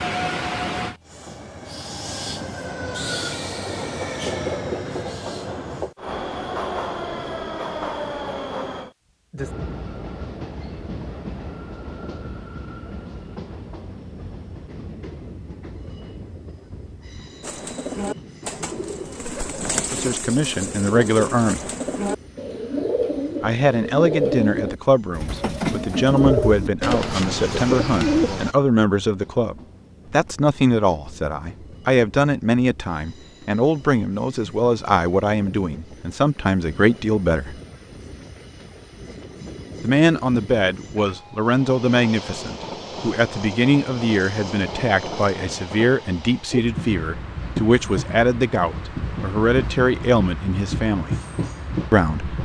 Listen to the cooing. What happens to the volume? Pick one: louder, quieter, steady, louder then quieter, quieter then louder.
louder.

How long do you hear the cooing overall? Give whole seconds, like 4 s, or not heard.
11 s.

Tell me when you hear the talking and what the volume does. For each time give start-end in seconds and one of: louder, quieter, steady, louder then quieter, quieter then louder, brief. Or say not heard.
19.8-21.6 brief
23.4-37.5 steady
39.8-51.1 steady
51.9-52.4 brief.